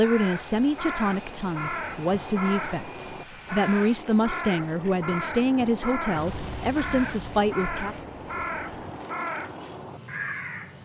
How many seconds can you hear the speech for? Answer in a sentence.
You can hear the speech for 8 seconds altogether.